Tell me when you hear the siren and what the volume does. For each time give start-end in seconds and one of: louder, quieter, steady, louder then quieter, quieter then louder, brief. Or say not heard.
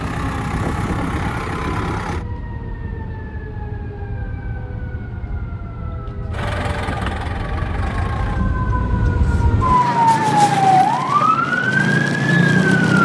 0.0-12.9 louder.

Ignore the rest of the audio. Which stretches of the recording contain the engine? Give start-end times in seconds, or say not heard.
0.0-2.2, 6.3-8.4.